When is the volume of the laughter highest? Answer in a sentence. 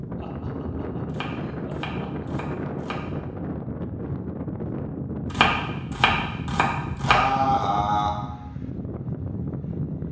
The volume of the laughter peaks at 7 seconds.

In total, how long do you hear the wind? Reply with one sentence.
The wind can be heard for 10 seconds in total.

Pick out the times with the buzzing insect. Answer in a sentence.
The buzzing insect can't be heard in this clip.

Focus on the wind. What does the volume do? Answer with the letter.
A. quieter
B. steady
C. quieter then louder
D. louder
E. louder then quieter
B.